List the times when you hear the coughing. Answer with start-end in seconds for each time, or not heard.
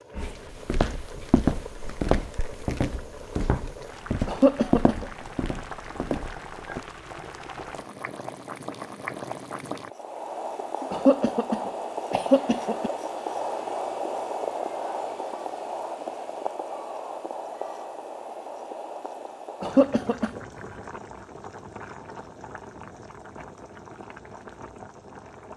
4.2-5.1, 10.9-12.9, 19.6-20.4.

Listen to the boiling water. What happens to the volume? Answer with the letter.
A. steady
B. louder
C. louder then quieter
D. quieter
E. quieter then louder
C.